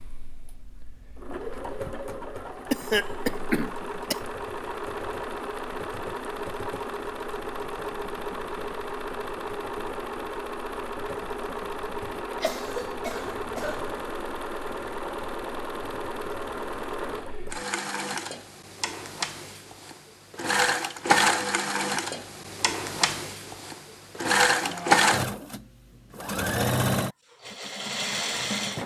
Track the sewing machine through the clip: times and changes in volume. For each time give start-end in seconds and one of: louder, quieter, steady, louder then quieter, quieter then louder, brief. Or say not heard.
0.0-28.8 louder.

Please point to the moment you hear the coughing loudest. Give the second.
3 s.